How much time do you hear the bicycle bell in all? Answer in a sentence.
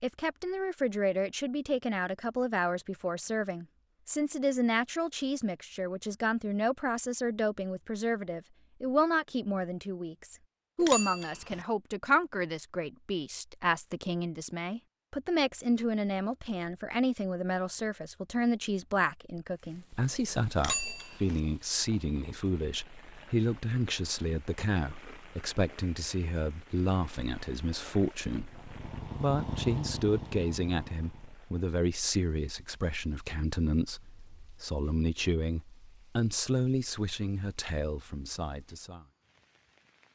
You can hear the bicycle bell for 2 seconds altogether.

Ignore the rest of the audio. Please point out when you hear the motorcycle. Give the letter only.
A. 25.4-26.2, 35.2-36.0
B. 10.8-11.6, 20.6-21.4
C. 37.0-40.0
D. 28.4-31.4
D.